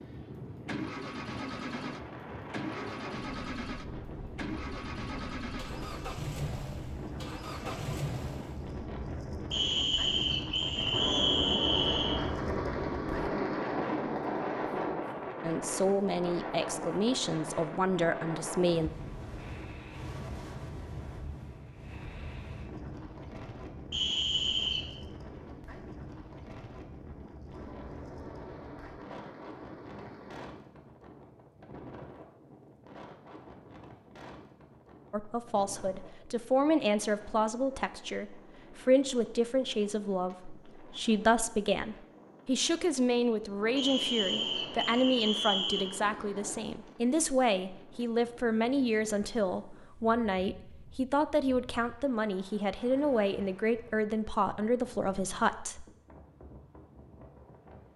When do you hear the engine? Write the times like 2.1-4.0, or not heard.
0.0-8.8.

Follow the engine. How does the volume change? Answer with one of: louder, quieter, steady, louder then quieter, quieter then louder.
steady.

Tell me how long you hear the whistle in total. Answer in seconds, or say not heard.
6 s.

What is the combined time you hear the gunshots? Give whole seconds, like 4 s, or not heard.
10 s.